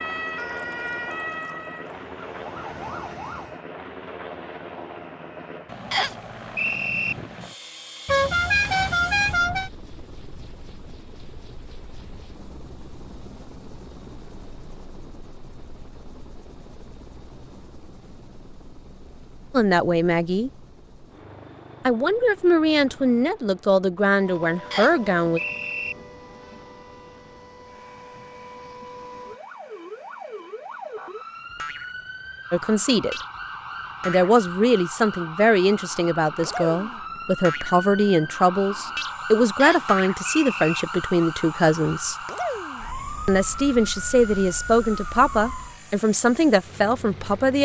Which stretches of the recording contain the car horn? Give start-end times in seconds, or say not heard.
8.1-9.7.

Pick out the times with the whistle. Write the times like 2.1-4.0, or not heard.
5.9-7.2, 24.7-25.9, 39.5-40.9.